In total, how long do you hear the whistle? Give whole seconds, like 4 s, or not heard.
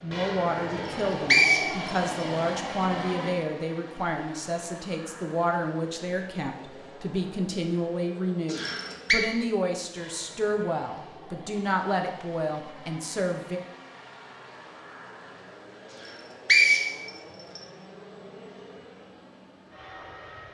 3 s.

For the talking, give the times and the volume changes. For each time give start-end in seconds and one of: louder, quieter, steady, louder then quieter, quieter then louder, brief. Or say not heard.
0.0-13.6 steady.